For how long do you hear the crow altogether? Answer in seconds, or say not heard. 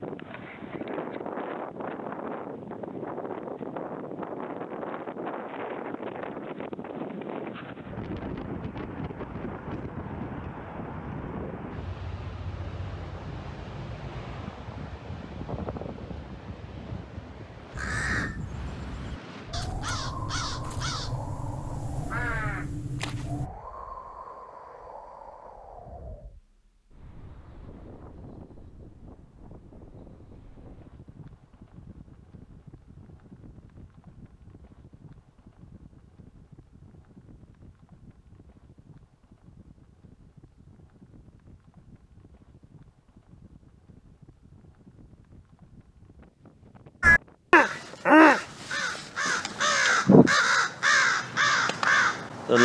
11 s.